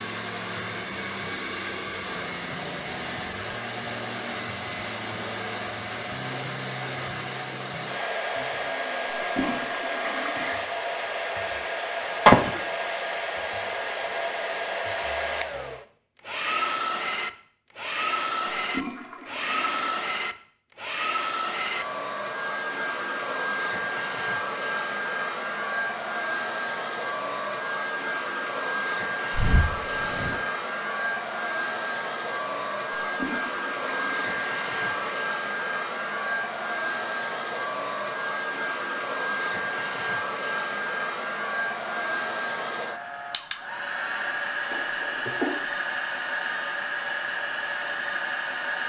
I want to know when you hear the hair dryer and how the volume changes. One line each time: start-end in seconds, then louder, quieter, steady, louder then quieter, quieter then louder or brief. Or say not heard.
0.0-48.8 steady.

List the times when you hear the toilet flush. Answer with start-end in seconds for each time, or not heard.
9.2-10.7, 18.6-19.9, 33.0-35.2.